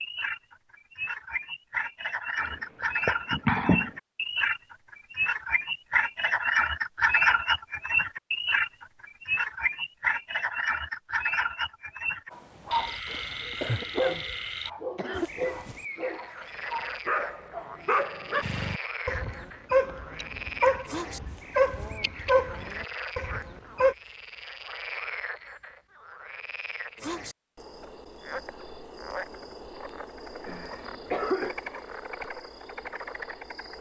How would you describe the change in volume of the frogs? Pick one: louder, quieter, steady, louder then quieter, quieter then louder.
quieter.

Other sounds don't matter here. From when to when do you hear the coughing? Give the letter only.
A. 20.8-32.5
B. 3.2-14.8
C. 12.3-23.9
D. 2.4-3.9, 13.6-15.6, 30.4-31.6
D.